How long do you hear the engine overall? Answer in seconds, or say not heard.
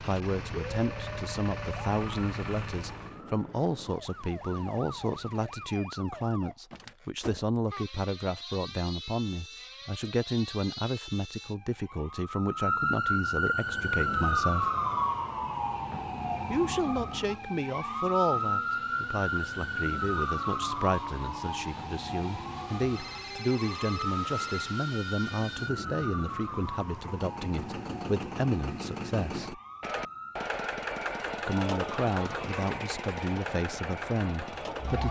25 s.